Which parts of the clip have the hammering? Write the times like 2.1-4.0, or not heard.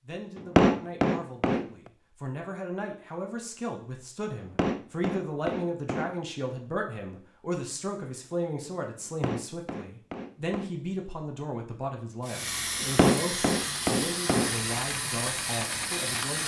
0.3-1.6, 4.4-6.2, 9.1-10.7, 12.8-14.6.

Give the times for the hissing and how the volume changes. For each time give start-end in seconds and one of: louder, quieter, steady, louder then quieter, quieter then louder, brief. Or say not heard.
12.2-16.4 steady.